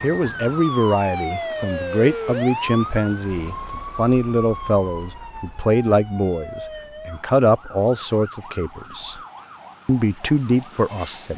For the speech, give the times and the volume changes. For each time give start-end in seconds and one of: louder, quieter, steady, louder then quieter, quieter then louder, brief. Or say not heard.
0.0-9.2 steady
9.8-11.3 brief.